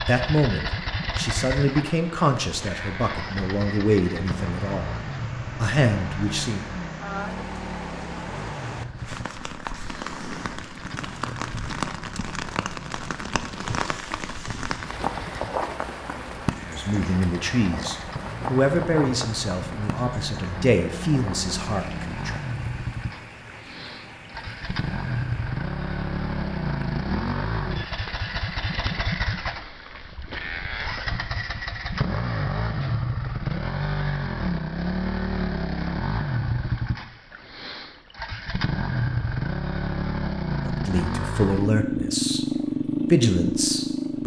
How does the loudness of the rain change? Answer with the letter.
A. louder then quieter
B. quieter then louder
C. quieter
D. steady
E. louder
A.